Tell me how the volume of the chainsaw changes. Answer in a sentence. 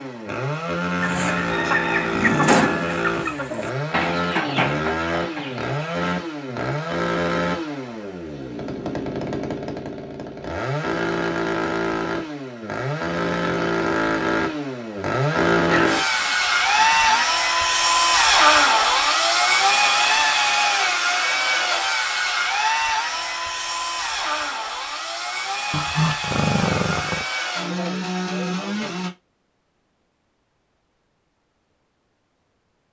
The volume of the chainsaw goes up, then down.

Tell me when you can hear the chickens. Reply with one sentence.
The chickens can be heard from 1.0 to 6.2 s.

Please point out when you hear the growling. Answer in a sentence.
You can hear the growling from 1.6 to 2.5 s, from 15.6 to 17.2 s and from 25.7 to 27.2 s.